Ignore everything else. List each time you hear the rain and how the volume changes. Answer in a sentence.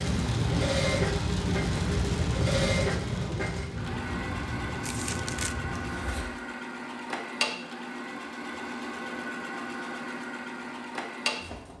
You can hear the rain from 0.0 to 6.2 s, getting quieter.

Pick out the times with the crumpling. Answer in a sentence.
You can hear the crumpling from 4.8 to 5.5 s.